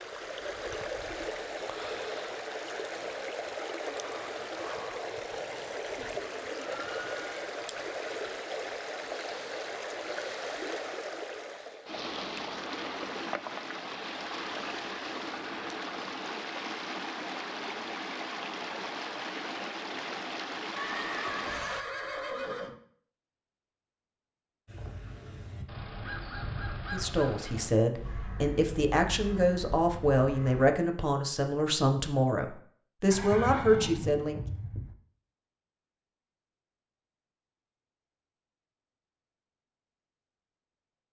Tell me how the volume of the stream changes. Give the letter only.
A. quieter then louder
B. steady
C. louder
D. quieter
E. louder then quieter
B.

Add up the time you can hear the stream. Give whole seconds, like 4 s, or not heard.
22 s.